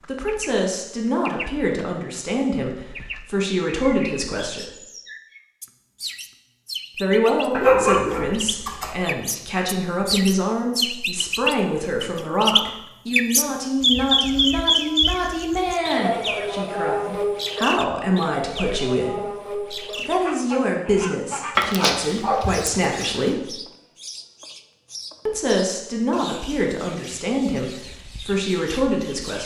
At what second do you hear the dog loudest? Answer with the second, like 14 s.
8 s.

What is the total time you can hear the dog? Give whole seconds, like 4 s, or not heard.
3 s.